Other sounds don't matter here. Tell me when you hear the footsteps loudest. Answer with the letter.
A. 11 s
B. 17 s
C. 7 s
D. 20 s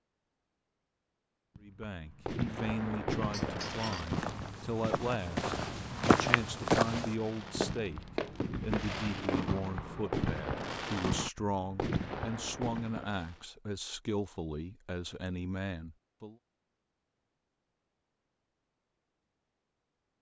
C.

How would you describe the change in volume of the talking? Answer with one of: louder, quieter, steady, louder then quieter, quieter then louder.
steady.